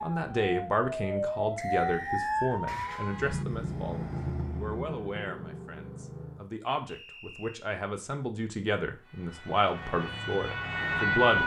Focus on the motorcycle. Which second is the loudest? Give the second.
4 s.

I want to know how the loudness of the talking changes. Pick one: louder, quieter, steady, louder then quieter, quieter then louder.
quieter then louder.